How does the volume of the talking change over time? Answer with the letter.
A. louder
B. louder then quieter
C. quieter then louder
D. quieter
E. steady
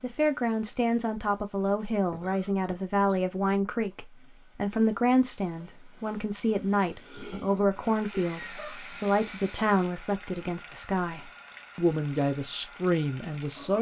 E.